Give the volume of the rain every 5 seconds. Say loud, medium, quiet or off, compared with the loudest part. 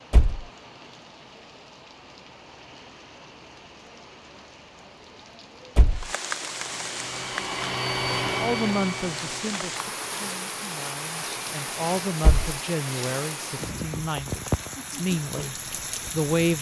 quiet, loud, loud, loud.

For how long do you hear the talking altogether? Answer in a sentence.
You can hear the talking for 8 seconds altogether.